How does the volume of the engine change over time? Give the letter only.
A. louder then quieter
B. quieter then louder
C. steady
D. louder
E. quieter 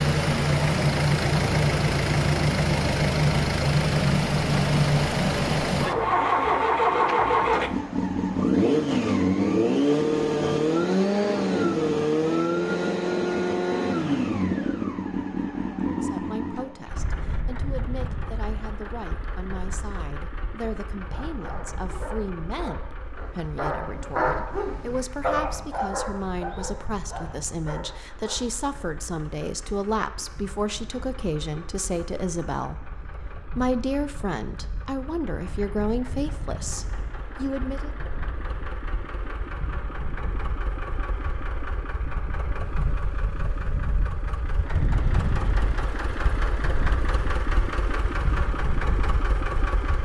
B.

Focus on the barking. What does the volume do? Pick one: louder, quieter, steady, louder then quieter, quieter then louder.
louder then quieter.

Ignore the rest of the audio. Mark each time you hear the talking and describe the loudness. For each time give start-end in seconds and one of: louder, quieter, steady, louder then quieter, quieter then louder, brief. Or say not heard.
15.8-38.0 louder.